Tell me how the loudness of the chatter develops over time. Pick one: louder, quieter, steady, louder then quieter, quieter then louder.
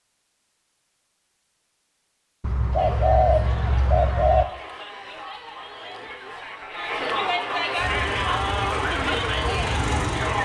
louder.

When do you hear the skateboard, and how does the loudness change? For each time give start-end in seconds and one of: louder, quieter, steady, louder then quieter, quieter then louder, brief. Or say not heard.
not heard.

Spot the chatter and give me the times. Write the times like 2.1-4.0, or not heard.
2.8-10.3.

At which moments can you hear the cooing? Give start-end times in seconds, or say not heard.
2.4-4.5.